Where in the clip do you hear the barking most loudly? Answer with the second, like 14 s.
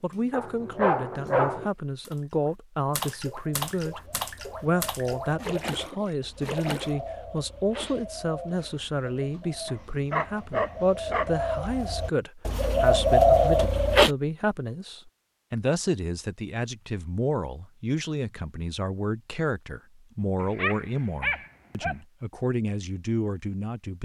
1 s.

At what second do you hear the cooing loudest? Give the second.
13 s.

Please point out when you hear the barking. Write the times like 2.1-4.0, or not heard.
0.3-1.7, 9.7-11.3, 20.4-21.9.